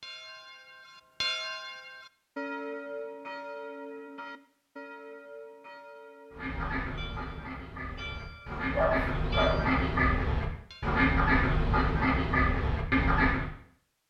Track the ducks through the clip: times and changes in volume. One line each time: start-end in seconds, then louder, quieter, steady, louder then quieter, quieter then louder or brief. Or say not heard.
6.3-13.5 louder.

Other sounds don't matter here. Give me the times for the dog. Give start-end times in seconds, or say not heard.
8.7-9.7.